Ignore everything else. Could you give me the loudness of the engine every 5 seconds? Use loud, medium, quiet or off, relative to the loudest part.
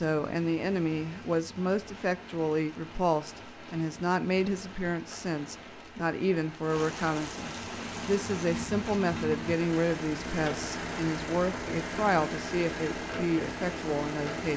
off, loud, loud.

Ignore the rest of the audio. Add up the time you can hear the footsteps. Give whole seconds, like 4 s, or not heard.
not heard.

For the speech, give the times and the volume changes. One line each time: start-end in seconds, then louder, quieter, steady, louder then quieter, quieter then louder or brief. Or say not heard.
0.0-14.5 steady.